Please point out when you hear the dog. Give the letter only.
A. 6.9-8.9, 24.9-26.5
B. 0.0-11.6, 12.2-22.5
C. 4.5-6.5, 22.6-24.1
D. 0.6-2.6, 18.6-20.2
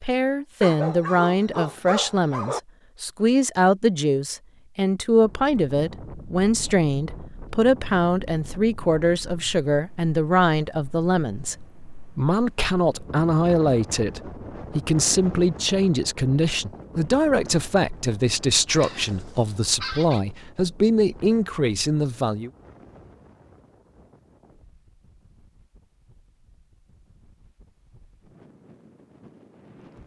D.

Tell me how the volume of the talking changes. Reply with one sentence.
The volume of the talking stays about the same.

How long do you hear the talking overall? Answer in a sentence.
You can hear the talking for 22 seconds altogether.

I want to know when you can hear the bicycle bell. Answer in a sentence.
The bicycle bell can't be heard in this clip.